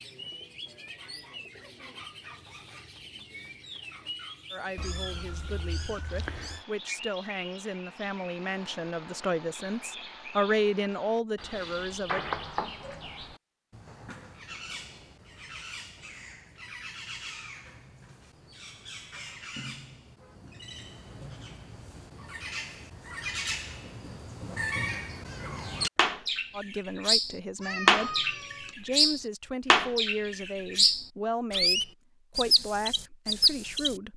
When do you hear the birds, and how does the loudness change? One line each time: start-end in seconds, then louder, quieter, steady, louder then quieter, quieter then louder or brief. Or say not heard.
0.0-34.0 louder.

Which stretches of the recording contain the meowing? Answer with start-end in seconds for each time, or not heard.
4.8-6.7, 12.1-13.1, 27.6-28.8.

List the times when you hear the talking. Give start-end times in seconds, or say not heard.
4.5-12.2, 26.5-34.1.